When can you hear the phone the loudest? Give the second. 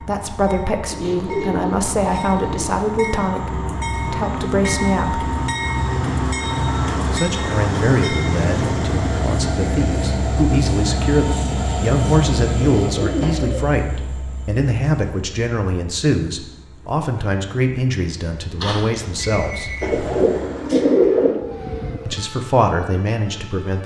19 s.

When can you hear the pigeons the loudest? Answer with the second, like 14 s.
21 s.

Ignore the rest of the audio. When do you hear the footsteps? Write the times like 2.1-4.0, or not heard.
not heard.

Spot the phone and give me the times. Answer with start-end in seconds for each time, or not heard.
18.6-20.1.